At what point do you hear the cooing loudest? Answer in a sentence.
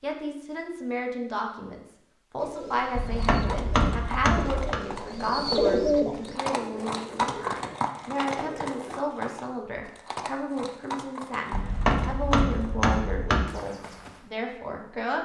The volume of the cooing peaks at 6 seconds.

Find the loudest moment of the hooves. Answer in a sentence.
The loudest moment of the hooves is at 7 seconds.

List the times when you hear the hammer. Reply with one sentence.
The hammer can be heard from 3.0 to 4.8 s and from 11.5 to 13.4 s.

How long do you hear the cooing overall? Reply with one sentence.
You can hear the cooing for 7 seconds altogether.